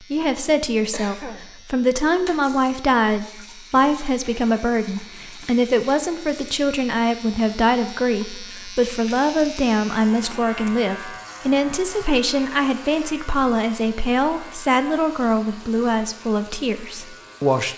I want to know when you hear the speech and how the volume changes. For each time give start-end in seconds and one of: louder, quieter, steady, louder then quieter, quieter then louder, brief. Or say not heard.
0.0-17.7 steady.